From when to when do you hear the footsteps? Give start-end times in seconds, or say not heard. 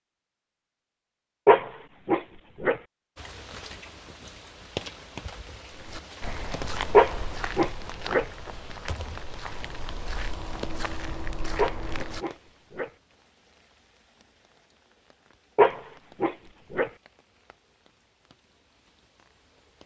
5.7-12.2.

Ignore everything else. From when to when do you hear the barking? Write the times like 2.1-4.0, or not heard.
1.4-2.8, 6.9-8.2, 11.6-12.9, 15.6-16.9.